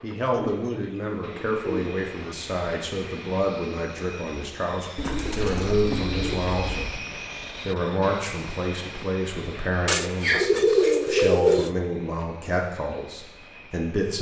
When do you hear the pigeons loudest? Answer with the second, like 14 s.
11 s.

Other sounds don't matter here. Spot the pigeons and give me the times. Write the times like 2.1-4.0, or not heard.
0.3-2.4, 5.0-7.0, 9.8-11.8.